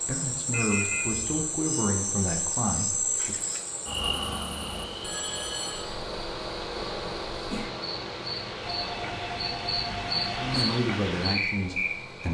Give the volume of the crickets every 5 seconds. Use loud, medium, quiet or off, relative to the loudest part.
loud, medium, loud.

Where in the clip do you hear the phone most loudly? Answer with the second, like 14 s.
1 s.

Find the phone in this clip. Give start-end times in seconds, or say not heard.
0.5-1.1, 5.0-5.8, 8.6-10.7.